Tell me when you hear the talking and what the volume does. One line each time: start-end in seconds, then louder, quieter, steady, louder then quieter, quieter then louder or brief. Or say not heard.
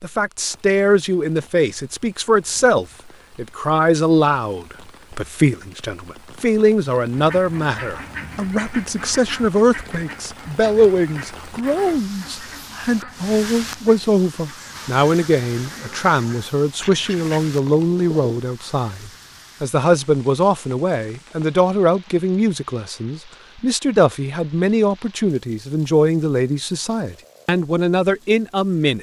0.0-28.9 steady.